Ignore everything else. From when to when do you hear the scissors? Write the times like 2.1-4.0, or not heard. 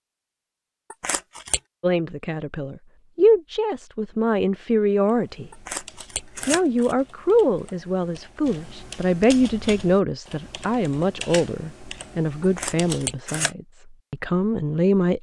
0.9-1.6, 5.5-7.0, 12.4-13.6.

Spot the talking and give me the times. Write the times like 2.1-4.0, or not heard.
1.8-5.5, 6.5-15.1.